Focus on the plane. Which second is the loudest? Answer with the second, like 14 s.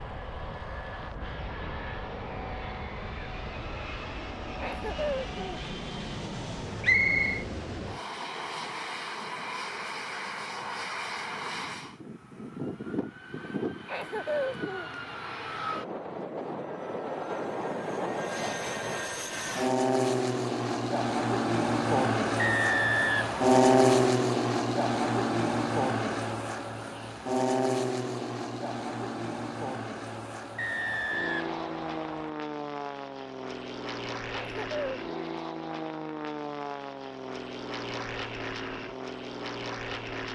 24 s.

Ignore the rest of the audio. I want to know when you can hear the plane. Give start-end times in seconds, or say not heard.
0.0-40.3.